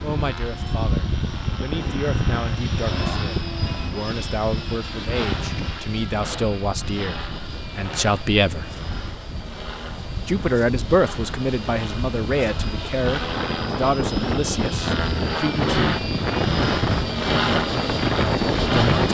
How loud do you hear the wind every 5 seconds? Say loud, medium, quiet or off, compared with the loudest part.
quiet, quiet, medium, loud.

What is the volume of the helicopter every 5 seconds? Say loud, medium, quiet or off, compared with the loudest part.
loud, medium, medium, loud.